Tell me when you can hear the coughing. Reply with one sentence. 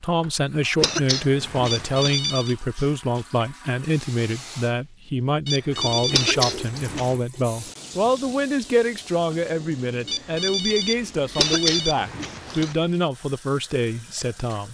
The coughing can be heard from 0.8 to 2.1 s, from 6.1 to 7.2 s and from 11.3 to 12.8 s.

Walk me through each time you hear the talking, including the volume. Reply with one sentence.
The talking can be heard from 0.0 to 14.6 s, at a steady volume.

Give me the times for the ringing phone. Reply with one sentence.
The ringing phone can be heard from 1.6 to 2.5 s, from 5.5 to 6.4 s and from 10.1 to 12.0 s.